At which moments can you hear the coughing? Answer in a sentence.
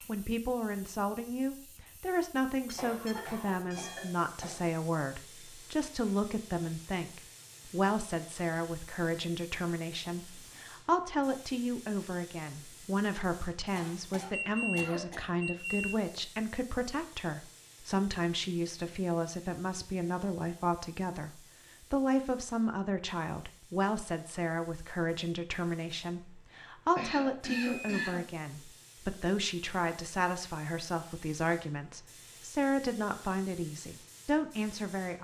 The coughing can be heard from 2.8 to 4.7 s, from 13.8 to 15.3 s and from 26.9 to 28.2 s.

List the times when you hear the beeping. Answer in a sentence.
The beeping can be heard from 2.6 to 4.2 s, from 14.3 to 16.1 s and from 26.9 to 28.0 s.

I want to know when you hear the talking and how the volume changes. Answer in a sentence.
You can hear the talking from 0.0 to 35.2 s, at a steady volume.